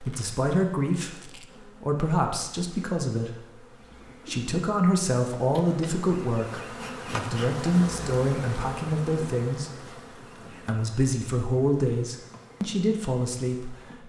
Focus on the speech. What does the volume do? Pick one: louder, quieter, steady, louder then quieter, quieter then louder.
steady.